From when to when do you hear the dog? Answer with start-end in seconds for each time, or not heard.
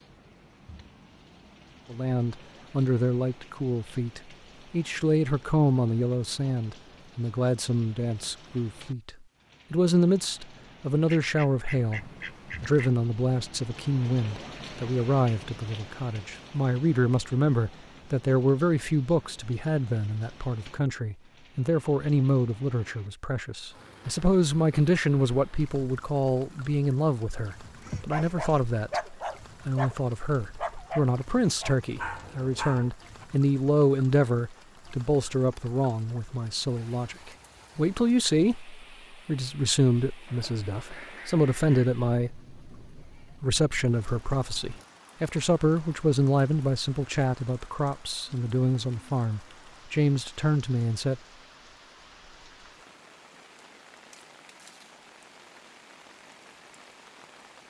28.1-33.2.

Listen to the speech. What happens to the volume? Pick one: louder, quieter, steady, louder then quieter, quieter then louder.
steady.